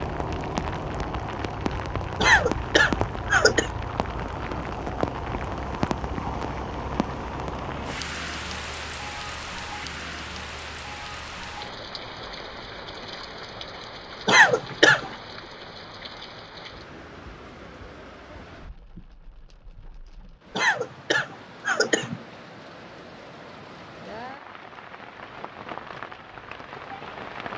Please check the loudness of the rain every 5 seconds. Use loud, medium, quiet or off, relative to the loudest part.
loud, loud, medium, quiet, quiet, medium.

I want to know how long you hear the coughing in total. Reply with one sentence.
The coughing can be heard for 4 seconds in total.